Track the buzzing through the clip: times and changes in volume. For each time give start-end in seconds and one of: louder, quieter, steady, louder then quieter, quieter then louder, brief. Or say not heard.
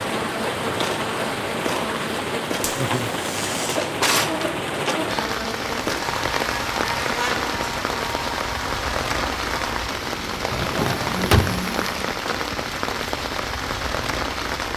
0.0-11.9 steady.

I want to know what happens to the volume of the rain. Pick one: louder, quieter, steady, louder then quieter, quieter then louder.
steady.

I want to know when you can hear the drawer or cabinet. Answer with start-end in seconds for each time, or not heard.
3.6-5.1, 10.5-11.6.